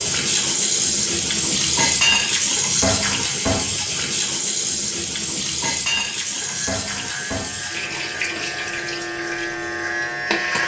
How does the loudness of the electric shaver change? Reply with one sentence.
The volume of the electric shaver goes up.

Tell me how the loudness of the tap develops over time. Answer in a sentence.
The loudness of the tap goes down.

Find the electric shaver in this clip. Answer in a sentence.
The electric shaver can be heard from 6.2 to 10.6 s.